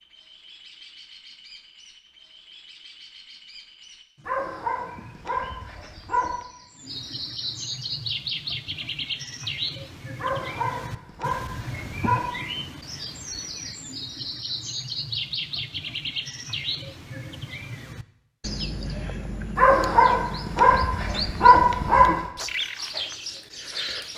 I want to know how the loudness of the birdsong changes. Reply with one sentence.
The volume of the birdsong goes up.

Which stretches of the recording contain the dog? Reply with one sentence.
You can hear the dog from 4.2 to 6.4 s, from 10.2 to 12.3 s and from 19.6 to 22.2 s.